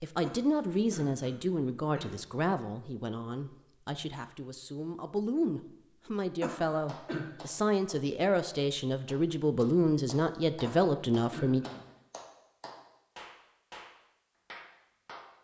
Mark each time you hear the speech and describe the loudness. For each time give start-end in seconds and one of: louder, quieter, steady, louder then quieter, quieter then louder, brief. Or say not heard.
0.0-11.7 quieter then louder.